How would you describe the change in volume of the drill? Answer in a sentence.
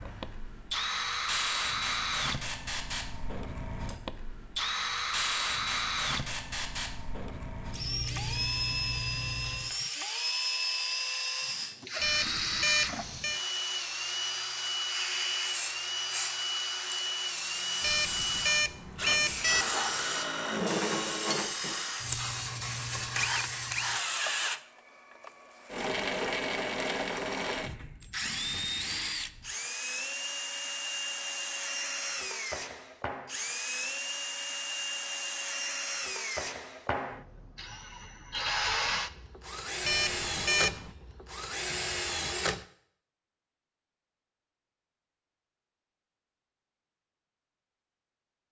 The volume of the drill stays about the same.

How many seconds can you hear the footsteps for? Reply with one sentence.
The footsteps can't be heard in this clip.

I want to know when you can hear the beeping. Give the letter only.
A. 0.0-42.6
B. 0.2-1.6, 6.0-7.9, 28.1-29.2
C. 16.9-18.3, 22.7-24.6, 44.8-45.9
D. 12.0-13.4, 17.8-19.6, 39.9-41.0
D.